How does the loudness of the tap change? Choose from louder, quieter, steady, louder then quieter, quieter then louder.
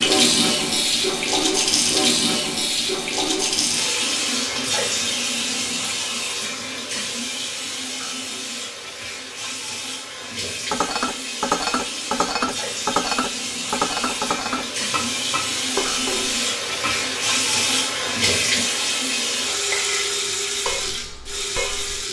quieter then louder.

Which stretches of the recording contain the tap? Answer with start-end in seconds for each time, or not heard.
0.0-22.0.